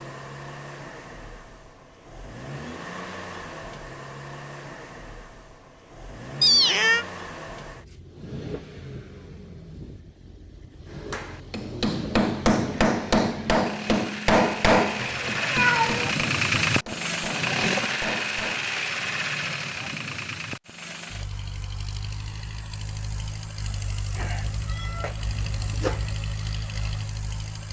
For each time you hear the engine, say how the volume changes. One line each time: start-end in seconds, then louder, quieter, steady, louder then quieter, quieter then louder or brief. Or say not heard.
0.0-27.6 louder then quieter.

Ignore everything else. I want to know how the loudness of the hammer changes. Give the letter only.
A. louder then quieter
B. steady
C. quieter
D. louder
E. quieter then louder
C.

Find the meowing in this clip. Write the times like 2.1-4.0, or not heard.
6.4-7.0, 14.9-16.1, 24.1-26.1.